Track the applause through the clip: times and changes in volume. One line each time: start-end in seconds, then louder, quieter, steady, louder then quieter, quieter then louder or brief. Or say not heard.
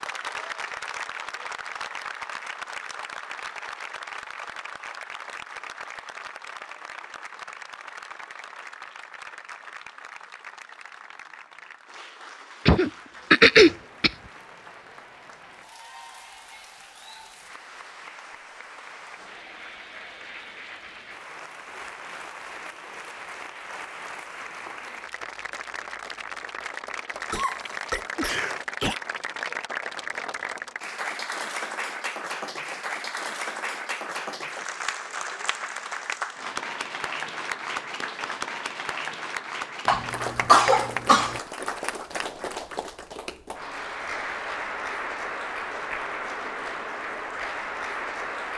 0.0-48.5 quieter then louder.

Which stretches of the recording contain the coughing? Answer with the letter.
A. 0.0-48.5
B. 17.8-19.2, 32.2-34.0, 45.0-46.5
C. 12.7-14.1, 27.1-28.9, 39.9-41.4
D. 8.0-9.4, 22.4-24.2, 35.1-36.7
C.